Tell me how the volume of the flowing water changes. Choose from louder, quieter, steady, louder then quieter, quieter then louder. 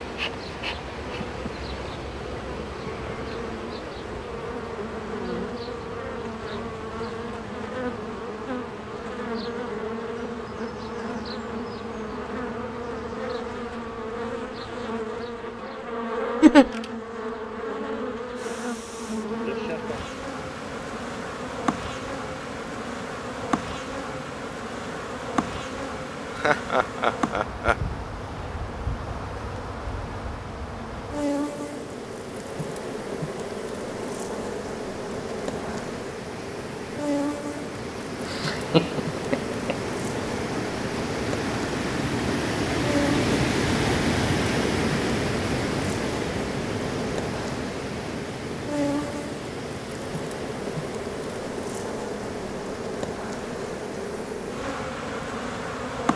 louder then quieter.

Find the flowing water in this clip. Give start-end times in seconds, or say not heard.
18.4-56.0.